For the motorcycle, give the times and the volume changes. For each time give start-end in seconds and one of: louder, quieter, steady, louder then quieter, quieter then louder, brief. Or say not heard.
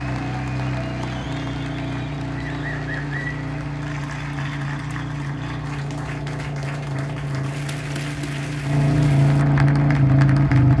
0.0-10.7 louder.